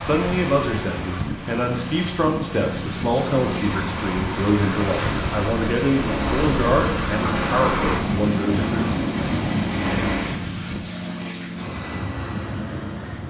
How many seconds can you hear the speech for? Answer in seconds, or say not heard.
9 s.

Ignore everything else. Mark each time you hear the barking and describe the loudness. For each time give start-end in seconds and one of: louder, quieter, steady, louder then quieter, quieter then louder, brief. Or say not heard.
not heard.